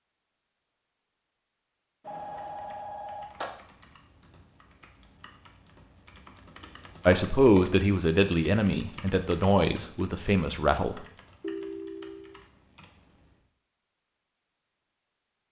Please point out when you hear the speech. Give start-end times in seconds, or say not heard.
7.0-11.0.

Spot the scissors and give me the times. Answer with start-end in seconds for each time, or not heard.
not heard.